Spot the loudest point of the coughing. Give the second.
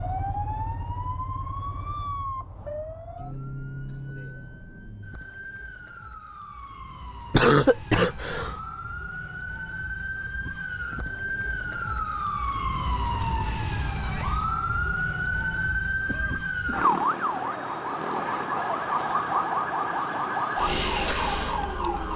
8 s.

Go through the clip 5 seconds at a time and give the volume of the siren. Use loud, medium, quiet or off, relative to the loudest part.
medium, quiet, loud, loud, loud.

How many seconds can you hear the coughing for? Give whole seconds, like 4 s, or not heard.
2 s.